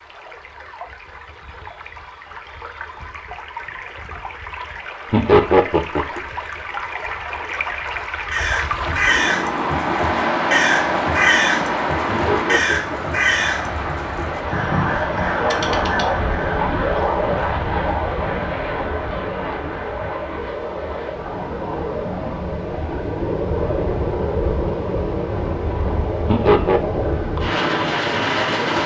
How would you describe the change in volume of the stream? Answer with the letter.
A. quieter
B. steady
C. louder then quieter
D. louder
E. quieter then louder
C.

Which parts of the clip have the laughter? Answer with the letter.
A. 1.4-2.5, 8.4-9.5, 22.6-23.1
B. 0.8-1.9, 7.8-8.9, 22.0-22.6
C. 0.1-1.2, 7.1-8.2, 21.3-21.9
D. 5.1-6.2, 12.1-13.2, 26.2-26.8
D.